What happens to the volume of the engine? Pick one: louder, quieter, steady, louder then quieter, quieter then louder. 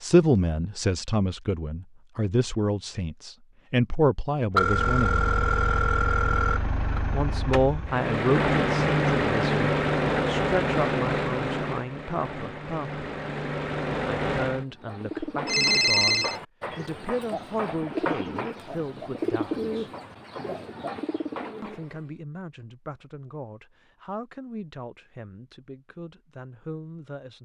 louder then quieter.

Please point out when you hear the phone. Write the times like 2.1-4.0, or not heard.
4.5-7.0, 15.4-16.4.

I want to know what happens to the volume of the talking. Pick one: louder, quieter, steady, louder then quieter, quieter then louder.
quieter.